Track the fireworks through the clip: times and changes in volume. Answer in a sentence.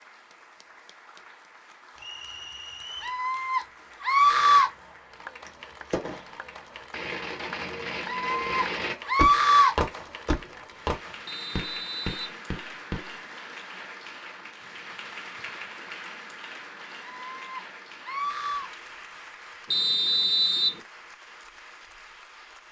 The fireworks can be heard from 4.5 to 13.2 s, getting louder then quieter.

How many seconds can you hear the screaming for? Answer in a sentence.
You can hear the screaming for 5 seconds altogether.